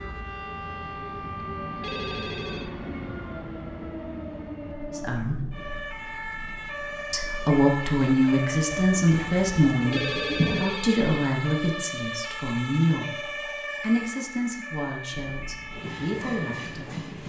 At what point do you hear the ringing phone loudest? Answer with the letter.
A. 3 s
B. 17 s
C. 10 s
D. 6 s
C.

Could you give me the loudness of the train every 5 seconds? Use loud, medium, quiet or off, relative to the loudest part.
loud, medium, off, loud.